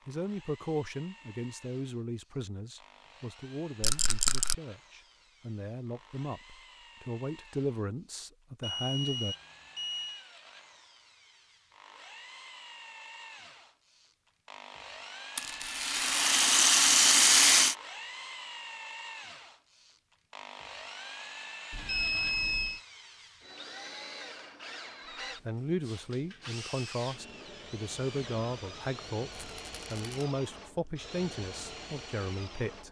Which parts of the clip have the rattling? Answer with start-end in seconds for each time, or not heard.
3.8-4.5, 15.3-17.8, 29.3-30.1.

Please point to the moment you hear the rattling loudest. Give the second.
17 s.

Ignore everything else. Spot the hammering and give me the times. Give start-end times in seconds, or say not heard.
not heard.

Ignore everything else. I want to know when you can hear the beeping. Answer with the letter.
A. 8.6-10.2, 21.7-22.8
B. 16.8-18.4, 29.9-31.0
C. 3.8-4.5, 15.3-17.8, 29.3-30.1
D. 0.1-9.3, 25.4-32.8
A.